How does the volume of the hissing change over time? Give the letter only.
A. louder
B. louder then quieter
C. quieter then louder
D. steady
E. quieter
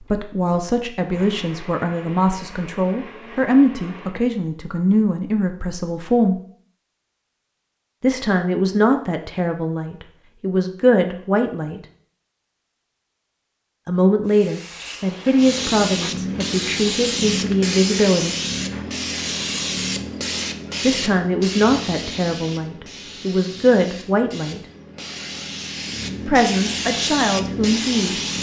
C.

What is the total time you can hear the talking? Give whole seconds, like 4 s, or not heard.
20 s.